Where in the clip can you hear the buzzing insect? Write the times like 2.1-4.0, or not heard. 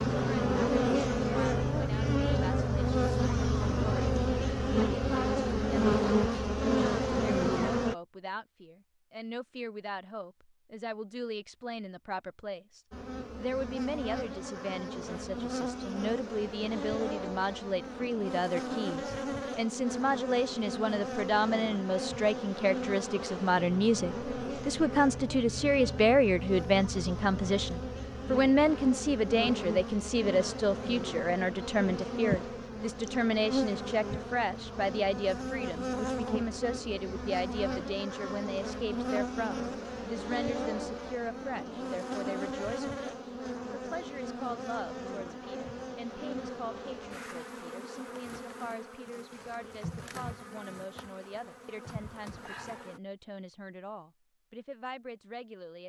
0.0-8.0, 12.9-53.0.